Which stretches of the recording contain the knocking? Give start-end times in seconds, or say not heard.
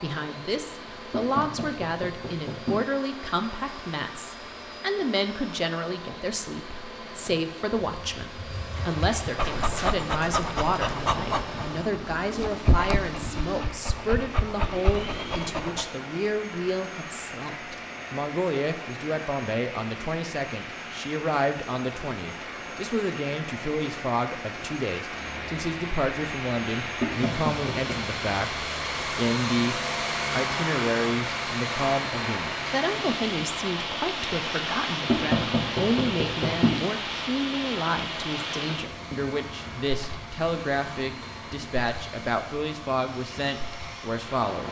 1.1-2.8, 27.0-28.0, 35.0-36.9.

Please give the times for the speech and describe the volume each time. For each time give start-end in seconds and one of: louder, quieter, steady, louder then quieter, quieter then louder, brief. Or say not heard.
0.0-44.6 steady.